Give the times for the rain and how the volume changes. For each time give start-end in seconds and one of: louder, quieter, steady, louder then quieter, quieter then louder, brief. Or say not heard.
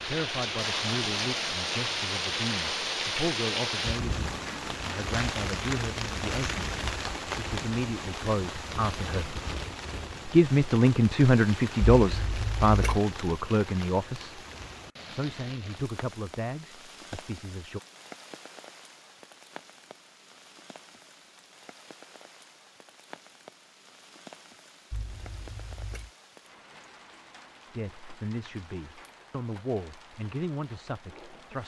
0.0-31.6 quieter.